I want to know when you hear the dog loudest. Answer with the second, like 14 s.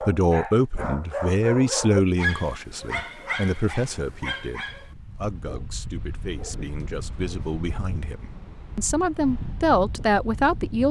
2 s.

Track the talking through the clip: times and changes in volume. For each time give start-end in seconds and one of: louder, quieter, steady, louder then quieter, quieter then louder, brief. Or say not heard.
0.0-10.8 quieter then louder.